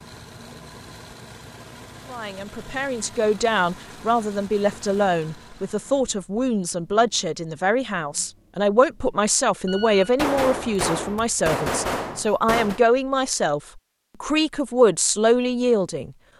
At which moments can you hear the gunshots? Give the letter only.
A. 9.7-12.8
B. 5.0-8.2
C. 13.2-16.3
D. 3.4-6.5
A.